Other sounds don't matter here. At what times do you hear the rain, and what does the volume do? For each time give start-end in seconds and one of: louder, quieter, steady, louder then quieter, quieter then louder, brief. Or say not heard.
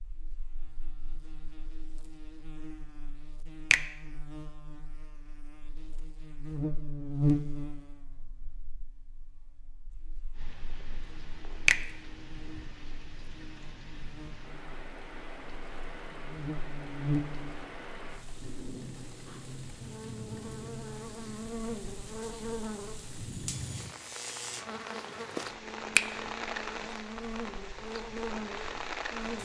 10.3-29.4 louder.